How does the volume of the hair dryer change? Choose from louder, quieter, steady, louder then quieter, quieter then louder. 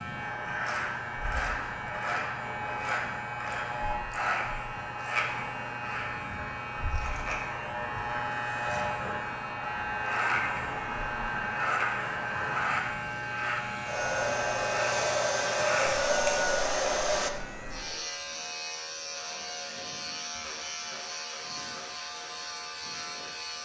louder.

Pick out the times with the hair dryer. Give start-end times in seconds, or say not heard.
0.0-17.3.